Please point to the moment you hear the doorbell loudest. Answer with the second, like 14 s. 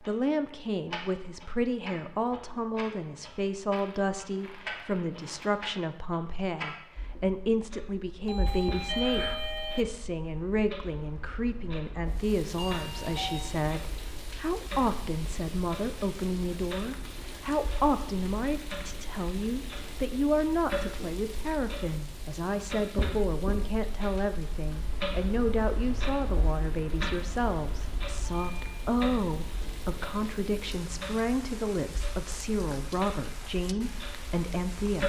9 s.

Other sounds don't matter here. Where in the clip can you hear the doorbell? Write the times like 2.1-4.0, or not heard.
8.2-9.8, 12.6-13.6, 28.4-28.9.